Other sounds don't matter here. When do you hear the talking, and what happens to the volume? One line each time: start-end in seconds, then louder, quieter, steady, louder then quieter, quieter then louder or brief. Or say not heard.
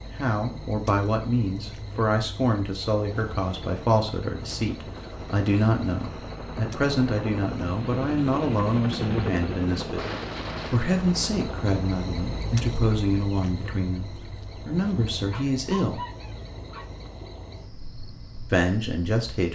0.1-10.0 steady
10.7-16.0 quieter then louder
18.5-19.5 brief.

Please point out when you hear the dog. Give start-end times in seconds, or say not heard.
15.3-16.9.